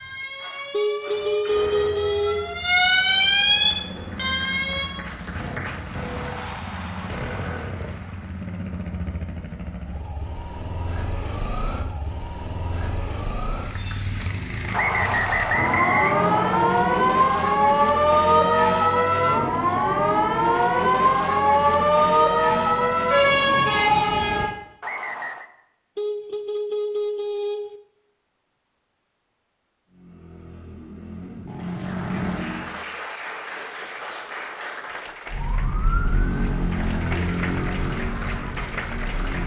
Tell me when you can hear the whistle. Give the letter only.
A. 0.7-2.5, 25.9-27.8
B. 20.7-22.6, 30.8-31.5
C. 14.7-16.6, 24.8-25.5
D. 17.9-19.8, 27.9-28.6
C.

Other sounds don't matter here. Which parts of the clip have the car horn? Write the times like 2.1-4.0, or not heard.
0.7-2.5, 25.9-27.8.